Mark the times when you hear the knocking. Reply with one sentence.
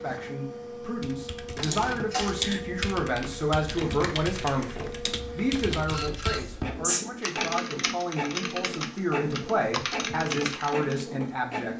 The knocking can't be heard in this clip.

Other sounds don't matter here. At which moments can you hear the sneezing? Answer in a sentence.
You can hear the sneezing from 1.7 to 2.6 s and from 6.4 to 7.0 s.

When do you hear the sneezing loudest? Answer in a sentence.
The loudest moment of the sneezing is at 7 seconds.